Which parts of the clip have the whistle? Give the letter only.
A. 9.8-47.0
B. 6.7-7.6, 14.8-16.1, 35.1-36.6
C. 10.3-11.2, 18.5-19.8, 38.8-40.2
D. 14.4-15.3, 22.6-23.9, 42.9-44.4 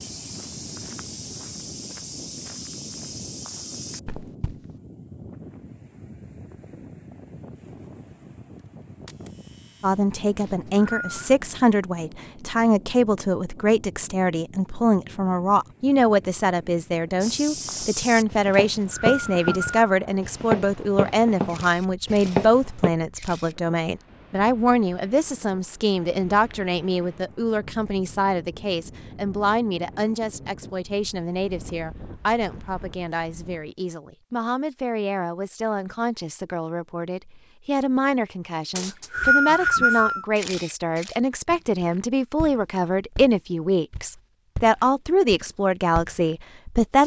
C.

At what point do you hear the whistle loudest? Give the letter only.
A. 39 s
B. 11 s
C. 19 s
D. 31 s
A.